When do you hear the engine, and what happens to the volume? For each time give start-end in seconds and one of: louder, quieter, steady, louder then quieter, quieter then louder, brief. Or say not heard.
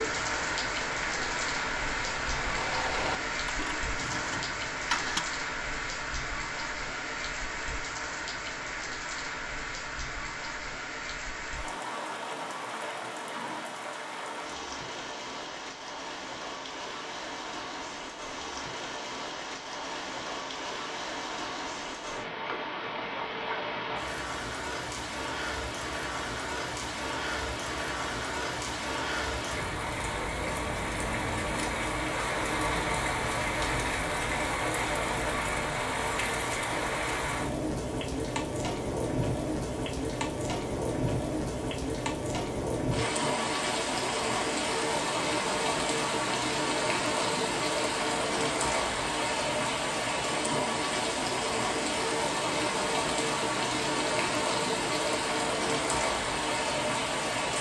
0.1-5.3 louder then quieter.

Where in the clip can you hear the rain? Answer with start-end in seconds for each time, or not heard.
0.0-57.5.